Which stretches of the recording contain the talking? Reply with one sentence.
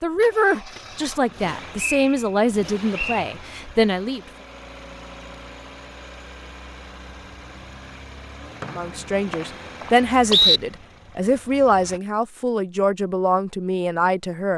You can hear the talking from 0.0 to 4.2 s and from 8.7 to 14.5 s.